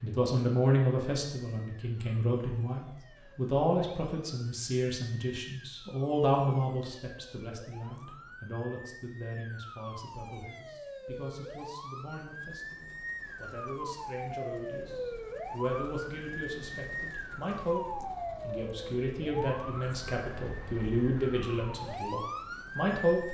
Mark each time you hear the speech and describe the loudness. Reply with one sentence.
You can hear the speech from 0.0 to 23.2 s, getting quieter then louder.